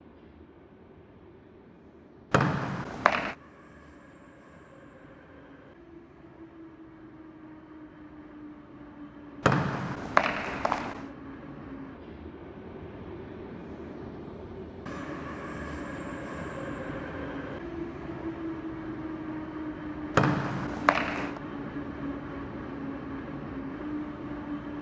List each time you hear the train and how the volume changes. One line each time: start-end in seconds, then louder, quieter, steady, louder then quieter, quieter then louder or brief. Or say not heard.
0.0-24.7 louder.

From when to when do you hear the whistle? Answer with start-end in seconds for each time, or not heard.
2.3-3.4, 9.4-11.1, 20.1-21.4.